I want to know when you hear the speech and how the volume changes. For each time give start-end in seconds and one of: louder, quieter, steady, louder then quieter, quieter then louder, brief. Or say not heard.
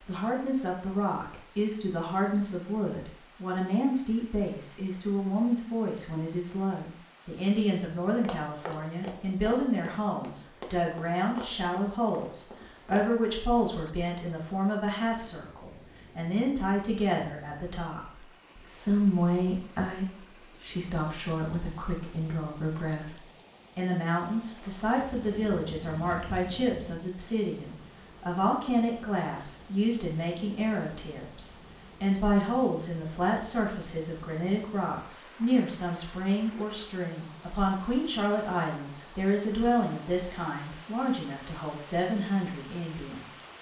0.1-43.2 steady.